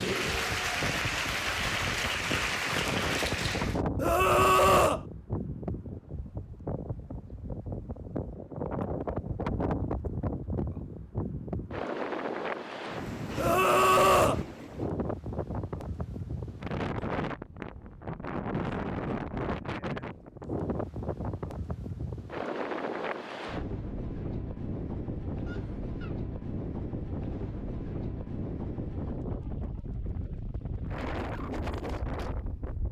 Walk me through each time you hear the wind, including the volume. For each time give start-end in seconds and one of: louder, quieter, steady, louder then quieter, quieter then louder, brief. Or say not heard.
0.1-32.8 steady.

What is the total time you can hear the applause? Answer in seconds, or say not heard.
4 s.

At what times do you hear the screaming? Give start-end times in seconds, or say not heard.
4.0-5.0, 13.3-14.4, 25.4-26.1.